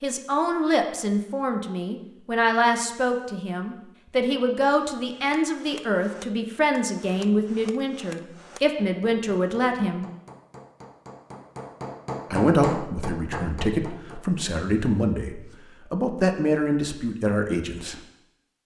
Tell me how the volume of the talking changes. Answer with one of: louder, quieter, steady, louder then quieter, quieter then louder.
steady.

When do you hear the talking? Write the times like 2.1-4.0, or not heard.
0.0-10.1, 12.3-18.0.